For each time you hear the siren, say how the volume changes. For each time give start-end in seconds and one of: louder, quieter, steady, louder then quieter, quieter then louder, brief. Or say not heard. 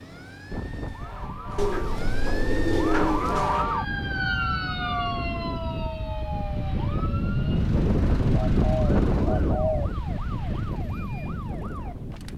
0.0-12.3 louder then quieter.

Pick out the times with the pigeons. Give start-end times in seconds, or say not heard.
1.6-3.5, 8.3-9.9.